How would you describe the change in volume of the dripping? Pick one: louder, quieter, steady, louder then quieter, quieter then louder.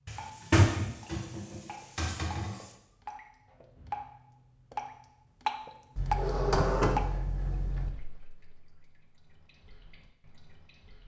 louder then quieter.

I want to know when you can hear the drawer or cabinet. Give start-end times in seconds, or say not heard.
0.1-2.6, 6.0-7.9.